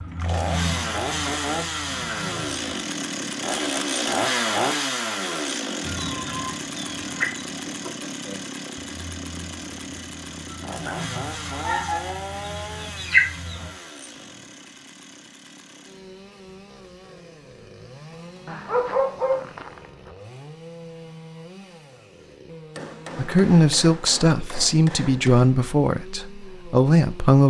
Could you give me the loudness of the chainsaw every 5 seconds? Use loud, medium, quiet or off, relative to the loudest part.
loud, medium, medium, quiet, quiet, quiet.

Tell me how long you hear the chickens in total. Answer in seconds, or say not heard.
11 s.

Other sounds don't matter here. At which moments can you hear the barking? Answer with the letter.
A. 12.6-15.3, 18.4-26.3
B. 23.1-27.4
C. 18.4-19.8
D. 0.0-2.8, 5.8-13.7
C.